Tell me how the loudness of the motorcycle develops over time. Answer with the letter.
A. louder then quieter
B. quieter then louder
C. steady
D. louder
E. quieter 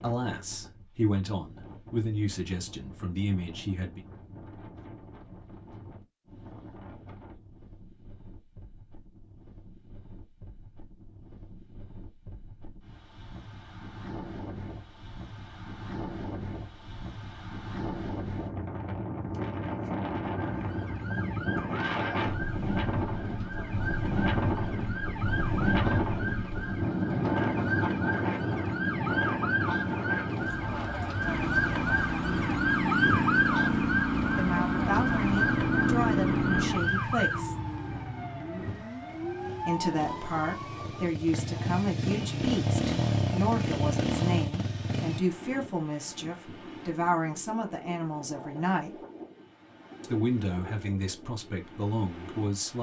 B.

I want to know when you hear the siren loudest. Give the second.
33 s.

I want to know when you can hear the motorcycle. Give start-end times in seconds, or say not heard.
31.2-45.2.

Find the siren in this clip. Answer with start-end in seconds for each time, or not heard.
20.4-41.1.